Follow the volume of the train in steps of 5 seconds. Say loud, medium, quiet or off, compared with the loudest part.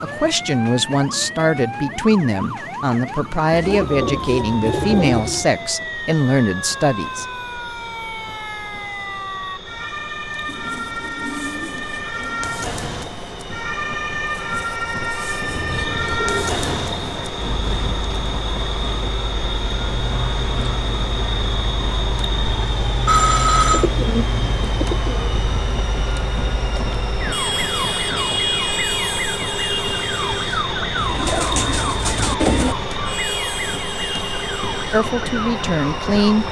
medium, medium, medium, loud, loud, loud, loud, loud.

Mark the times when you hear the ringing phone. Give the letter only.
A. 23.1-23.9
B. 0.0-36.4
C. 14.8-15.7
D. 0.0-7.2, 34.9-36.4
A.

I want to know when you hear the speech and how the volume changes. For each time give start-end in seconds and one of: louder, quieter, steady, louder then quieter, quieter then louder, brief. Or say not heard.
0.0-7.2 steady
34.9-36.4 brief.